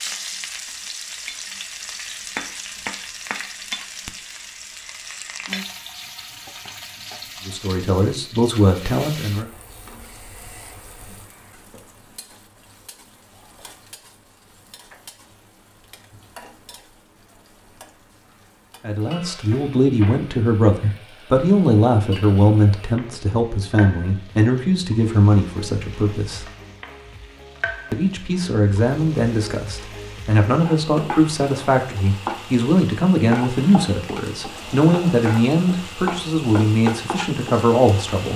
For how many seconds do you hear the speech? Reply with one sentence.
You can hear the speech for 20 seconds altogether.